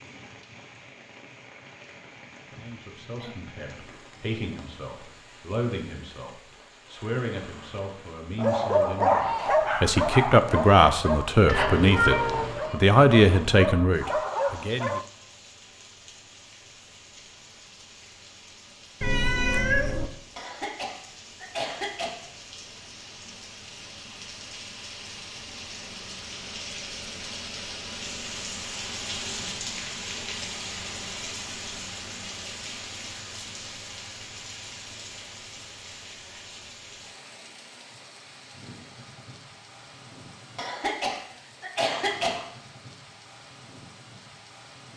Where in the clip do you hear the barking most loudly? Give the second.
9 s.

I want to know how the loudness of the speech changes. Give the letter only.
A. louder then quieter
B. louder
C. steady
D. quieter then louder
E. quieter
B.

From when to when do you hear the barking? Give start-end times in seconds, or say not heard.
8.3-15.1.